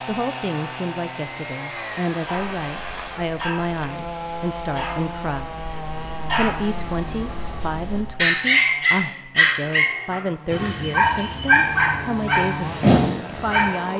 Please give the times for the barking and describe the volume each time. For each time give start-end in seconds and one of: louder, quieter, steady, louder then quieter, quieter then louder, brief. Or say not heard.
2.2-13.7 louder.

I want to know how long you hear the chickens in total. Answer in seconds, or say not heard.
not heard.